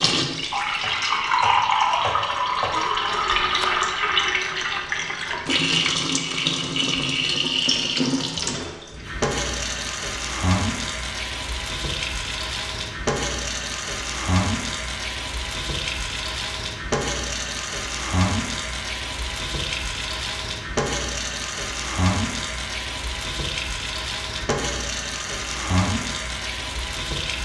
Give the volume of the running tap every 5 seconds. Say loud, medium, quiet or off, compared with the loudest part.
loud, loud, medium, medium, medium, medium.